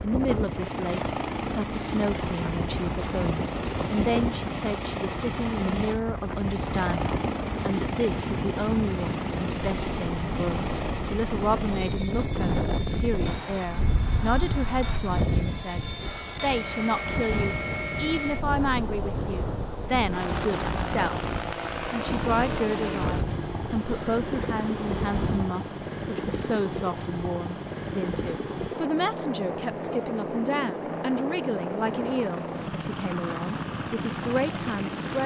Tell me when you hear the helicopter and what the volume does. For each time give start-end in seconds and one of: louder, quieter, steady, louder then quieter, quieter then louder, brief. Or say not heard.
0.0-35.2 steady.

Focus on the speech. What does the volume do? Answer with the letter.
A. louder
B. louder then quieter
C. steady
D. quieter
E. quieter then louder
C.